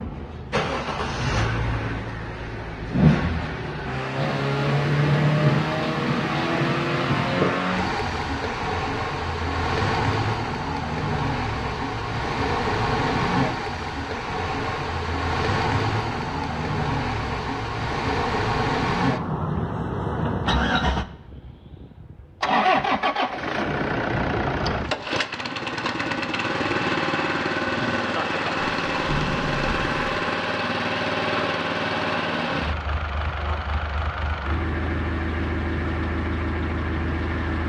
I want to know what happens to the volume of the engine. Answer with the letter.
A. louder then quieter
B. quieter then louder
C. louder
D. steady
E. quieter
D.